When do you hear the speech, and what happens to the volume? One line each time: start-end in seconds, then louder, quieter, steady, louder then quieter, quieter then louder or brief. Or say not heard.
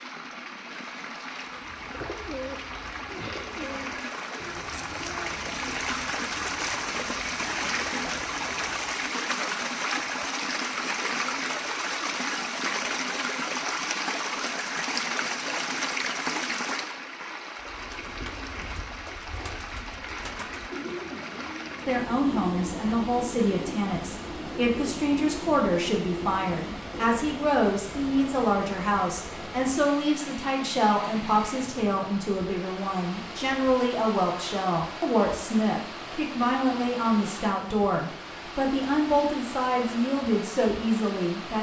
21.9-41.5 steady.